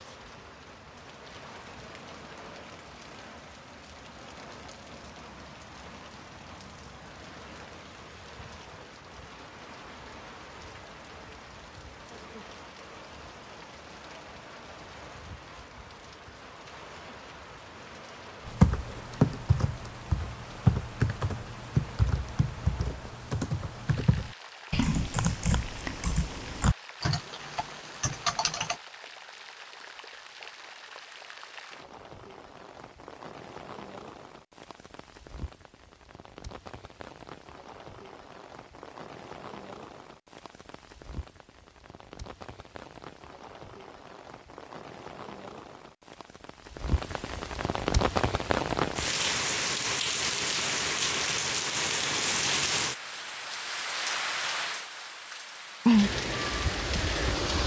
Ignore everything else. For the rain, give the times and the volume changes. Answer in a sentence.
The rain can be heard from 0.0 to 57.6 s, getting louder.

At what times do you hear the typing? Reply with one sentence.
The typing can be heard from 18.4 to 28.8 s.